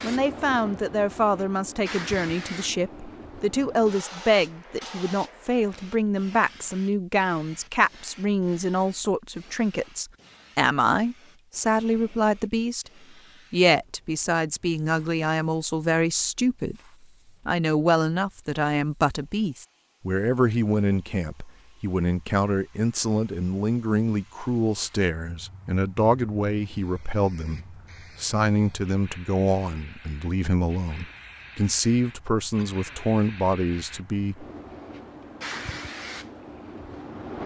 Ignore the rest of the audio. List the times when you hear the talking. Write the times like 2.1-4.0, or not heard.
0.0-12.9, 13.5-16.8, 17.4-34.5.